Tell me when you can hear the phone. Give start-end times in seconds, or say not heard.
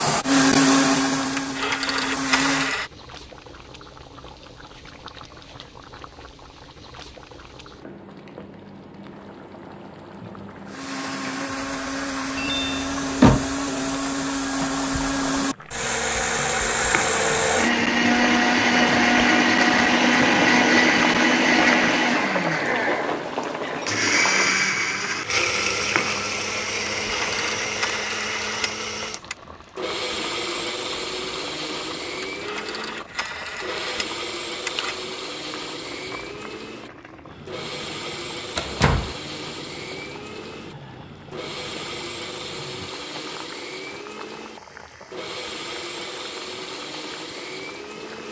1.4-2.9, 26.9-29.4, 32.2-35.0.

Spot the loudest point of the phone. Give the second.
2 s.